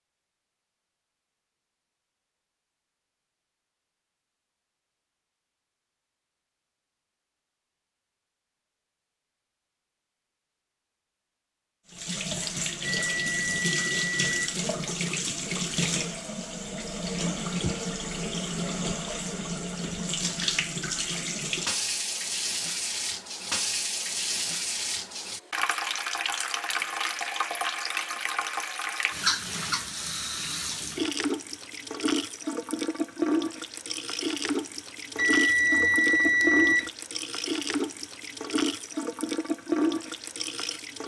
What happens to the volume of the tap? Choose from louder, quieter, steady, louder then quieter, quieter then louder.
steady.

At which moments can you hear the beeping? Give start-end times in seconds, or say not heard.
12.8-14.6, 35.1-36.9.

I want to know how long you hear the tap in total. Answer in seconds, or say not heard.
29 s.